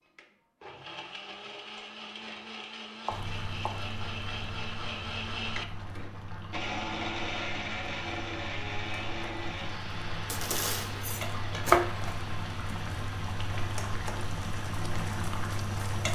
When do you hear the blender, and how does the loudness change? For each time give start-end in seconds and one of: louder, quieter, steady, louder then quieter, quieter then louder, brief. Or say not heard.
0.0-15.9 louder then quieter.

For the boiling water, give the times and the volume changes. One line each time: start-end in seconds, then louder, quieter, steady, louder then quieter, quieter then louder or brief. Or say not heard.
3.1-16.0 louder.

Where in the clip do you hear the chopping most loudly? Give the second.
12 s.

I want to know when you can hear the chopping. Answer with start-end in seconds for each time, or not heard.
3.0-3.9, 10.3-12.2.